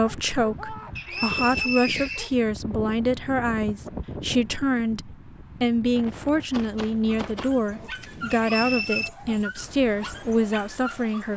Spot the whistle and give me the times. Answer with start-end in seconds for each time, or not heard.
0.9-2.4, 8.3-9.1.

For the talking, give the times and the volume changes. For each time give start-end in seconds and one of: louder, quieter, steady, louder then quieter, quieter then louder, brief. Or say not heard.
0.0-11.3 steady.